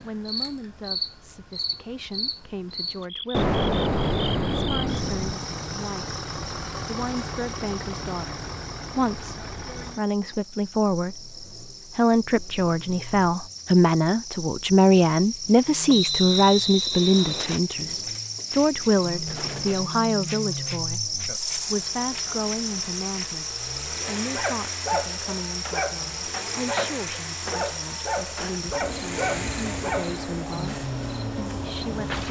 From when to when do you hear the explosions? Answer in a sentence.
The explosions can be heard from 3.3 to 5.3 s and from 19.2 to 19.9 s.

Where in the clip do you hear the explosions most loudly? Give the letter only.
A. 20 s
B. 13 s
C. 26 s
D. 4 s
D.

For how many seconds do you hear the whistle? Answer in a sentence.
You can hear the whistle for 2 seconds altogether.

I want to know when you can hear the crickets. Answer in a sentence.
You can hear the crickets from 0.0 to 32.2 s.